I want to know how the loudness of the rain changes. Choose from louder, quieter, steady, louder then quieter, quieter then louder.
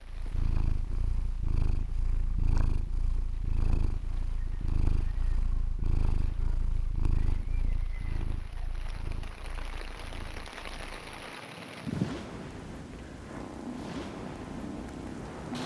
louder.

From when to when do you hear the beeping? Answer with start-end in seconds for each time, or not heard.
not heard.